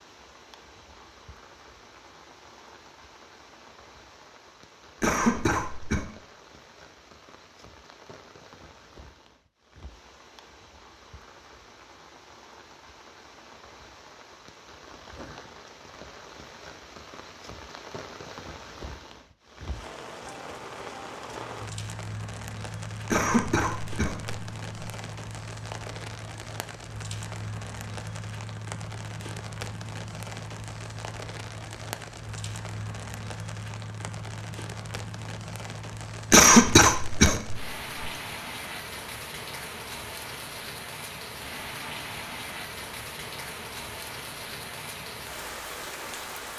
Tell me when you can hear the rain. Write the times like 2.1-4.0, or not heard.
0.0-46.5.